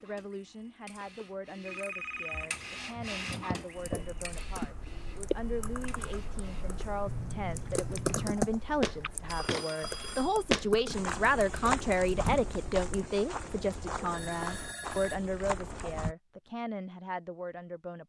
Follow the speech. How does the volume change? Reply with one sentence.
The volume of the speech goes up, then down.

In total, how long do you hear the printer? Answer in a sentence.
The printer can be heard for 7 seconds in total.